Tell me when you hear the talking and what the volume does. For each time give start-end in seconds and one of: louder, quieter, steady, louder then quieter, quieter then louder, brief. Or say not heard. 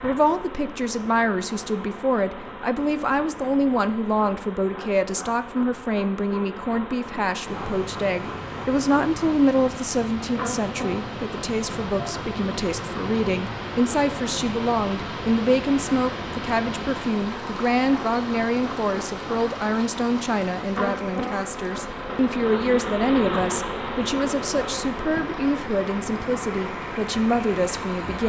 0.0-28.2 steady.